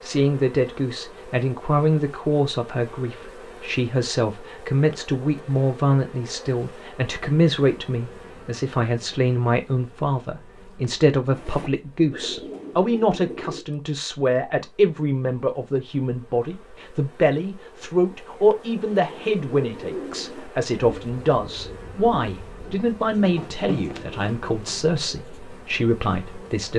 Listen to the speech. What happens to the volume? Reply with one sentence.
The volume of the speech stays about the same.